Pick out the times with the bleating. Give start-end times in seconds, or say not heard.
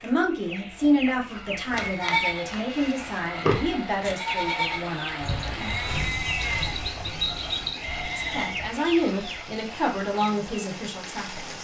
1.3-2.8, 3.5-8.7.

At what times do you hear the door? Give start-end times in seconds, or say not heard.
not heard.